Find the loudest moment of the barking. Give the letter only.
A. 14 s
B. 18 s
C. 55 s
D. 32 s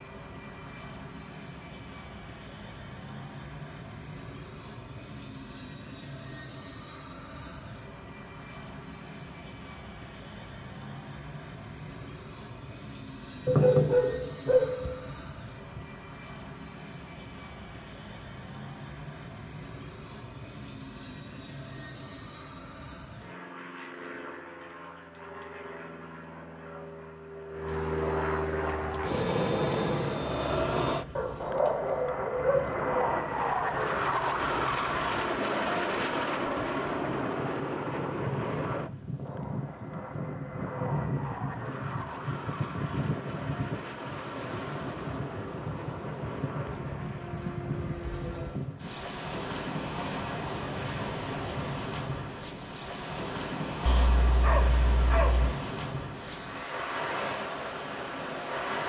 A.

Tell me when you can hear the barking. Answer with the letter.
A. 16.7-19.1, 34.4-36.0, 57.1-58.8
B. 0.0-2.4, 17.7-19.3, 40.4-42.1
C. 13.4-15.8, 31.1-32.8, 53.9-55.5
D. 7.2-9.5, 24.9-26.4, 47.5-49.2
C.